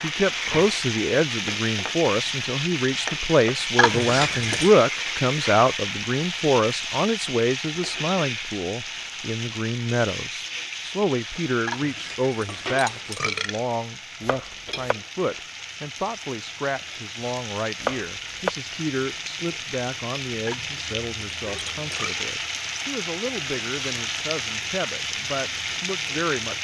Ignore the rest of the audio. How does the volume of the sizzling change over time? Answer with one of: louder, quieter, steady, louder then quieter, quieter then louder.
quieter then louder.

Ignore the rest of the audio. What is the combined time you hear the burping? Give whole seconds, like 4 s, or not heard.
5 s.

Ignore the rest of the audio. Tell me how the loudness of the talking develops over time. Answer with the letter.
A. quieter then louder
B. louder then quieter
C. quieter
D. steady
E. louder
C.